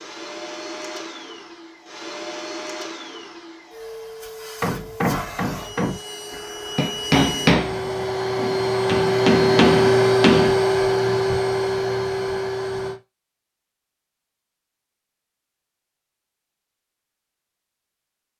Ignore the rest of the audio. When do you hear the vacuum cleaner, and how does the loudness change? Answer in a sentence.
You can hear the vacuum cleaner from 0.0 to 13.0 s, getting louder.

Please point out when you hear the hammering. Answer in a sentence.
The hammering can be heard from 4.6 to 10.6 s.